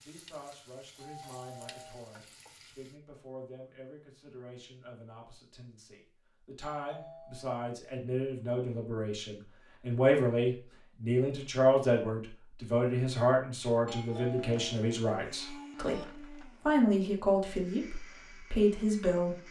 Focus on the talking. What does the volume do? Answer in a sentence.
The volume of the talking goes up.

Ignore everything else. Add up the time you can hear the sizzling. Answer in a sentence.
The sizzling can be heard for 3 seconds in total.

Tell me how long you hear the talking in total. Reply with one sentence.
You can hear the talking for 19 seconds altogether.